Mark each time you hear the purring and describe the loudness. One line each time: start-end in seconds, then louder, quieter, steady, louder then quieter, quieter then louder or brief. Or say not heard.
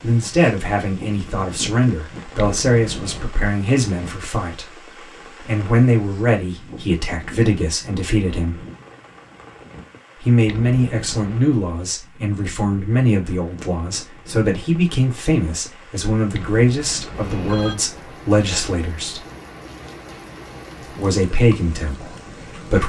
not heard.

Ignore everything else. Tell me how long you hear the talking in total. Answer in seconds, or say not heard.
20 s.